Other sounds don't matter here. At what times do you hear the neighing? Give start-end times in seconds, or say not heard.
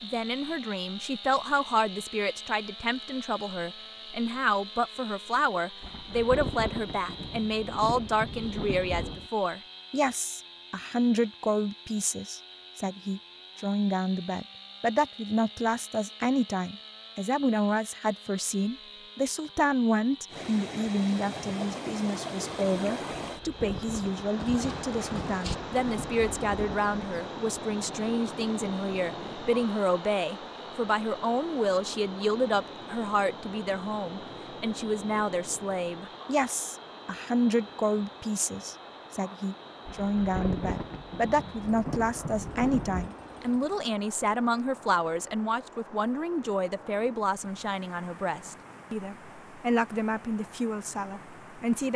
24.4-25.6.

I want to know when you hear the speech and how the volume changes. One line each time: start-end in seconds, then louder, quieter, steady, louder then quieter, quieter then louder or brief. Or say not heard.
0.0-51.9 steady.